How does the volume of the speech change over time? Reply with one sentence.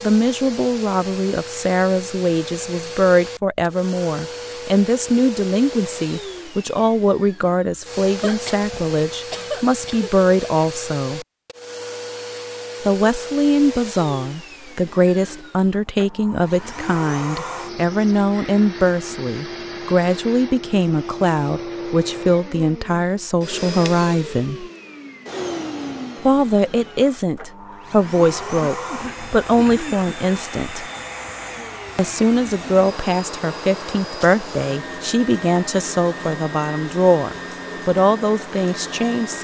The volume of the speech stays about the same.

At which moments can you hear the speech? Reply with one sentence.
You can hear the speech from 0.0 to 11.2 s, from 12.8 to 24.6 s, from 26.2 to 30.9 s and from 31.9 to 39.3 s.